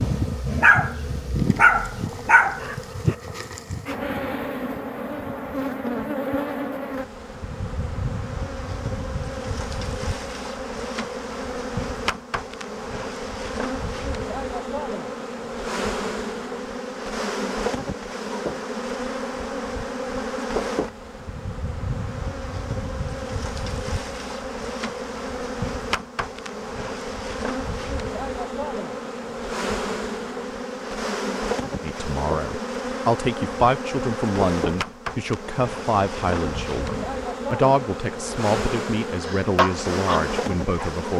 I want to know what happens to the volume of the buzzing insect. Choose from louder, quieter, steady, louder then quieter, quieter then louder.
steady.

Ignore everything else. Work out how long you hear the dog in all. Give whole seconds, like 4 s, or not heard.
5 s.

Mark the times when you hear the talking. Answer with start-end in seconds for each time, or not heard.
31.8-41.1.